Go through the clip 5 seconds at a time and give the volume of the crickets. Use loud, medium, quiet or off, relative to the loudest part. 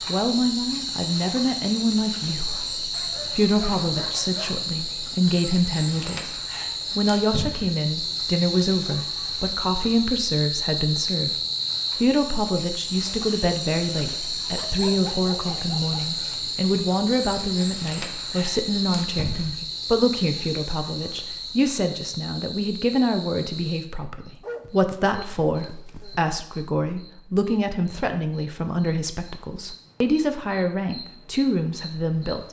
loud, loud, loud, loud, medium, quiet, quiet.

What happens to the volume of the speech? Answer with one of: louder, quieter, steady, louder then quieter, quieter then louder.
steady.